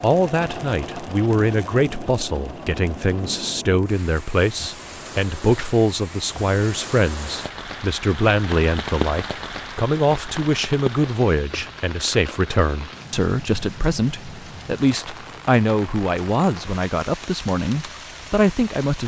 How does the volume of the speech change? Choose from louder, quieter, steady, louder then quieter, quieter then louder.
steady.